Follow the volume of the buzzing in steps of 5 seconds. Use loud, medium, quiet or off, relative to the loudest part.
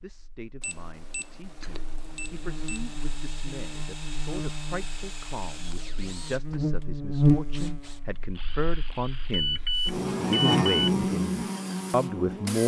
quiet, loud, loud.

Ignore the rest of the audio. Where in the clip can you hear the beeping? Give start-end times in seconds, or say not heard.
0.6-3.1, 9.3-10.9.